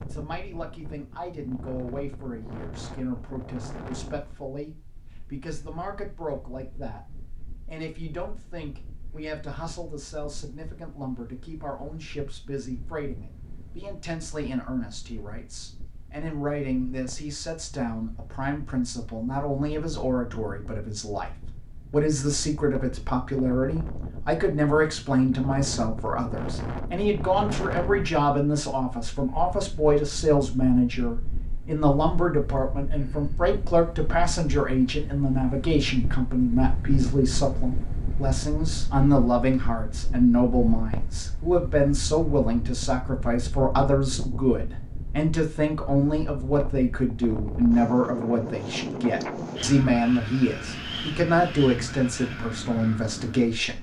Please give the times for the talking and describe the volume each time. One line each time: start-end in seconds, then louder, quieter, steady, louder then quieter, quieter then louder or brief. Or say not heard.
0.0-53.7 louder.